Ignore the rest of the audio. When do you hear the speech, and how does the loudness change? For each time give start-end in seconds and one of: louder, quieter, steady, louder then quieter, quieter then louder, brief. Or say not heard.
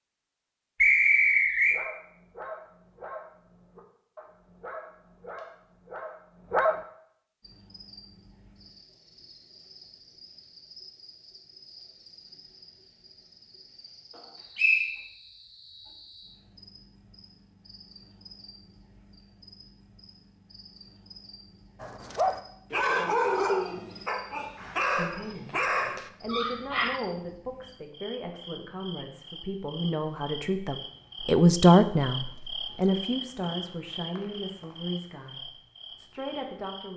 24.9-36.9 louder then quieter.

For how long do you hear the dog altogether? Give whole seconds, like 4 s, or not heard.
10 s.